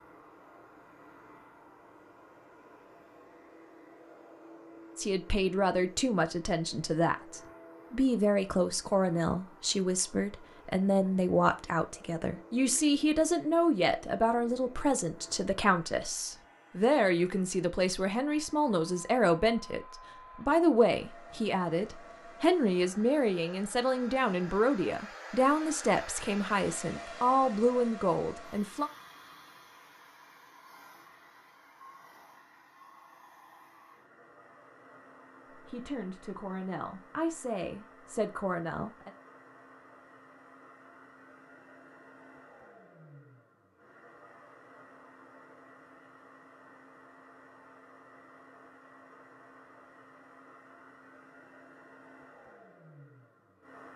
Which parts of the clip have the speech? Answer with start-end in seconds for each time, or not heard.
5.0-28.9, 35.5-39.1.